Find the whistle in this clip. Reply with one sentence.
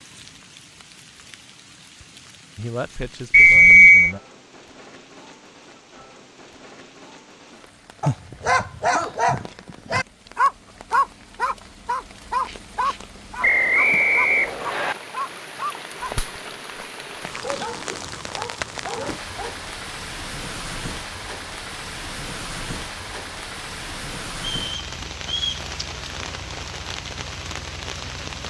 The whistle can be heard from 3.3 to 4.2 s, from 13.4 to 14.9 s and from 24.4 to 25.6 s.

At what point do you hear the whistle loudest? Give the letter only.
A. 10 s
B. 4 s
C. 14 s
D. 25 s
B.